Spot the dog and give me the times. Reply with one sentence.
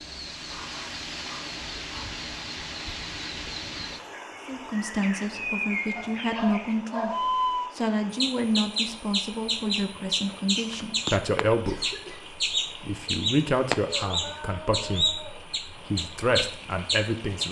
You can hear the dog from 0.5 to 2.1 s, from 6.0 to 7.4 s and from 13.9 to 15.4 s.